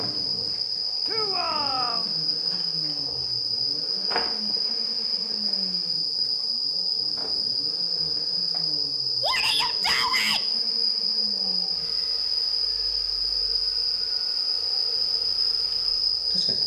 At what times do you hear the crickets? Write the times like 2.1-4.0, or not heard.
0.0-16.6.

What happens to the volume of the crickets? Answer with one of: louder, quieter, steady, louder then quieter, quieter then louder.
steady.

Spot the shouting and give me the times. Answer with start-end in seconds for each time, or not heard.
1.1-2.1, 9.2-10.4.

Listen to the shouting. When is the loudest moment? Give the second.
10 s.